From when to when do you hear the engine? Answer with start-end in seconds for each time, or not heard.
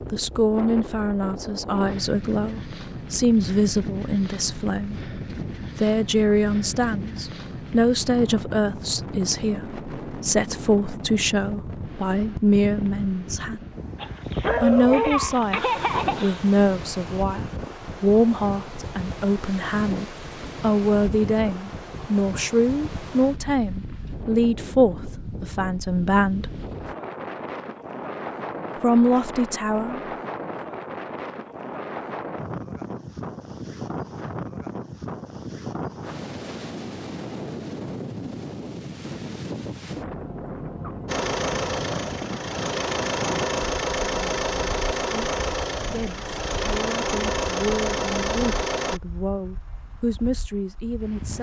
41.0-49.0.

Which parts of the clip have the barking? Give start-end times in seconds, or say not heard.
13.9-16.5.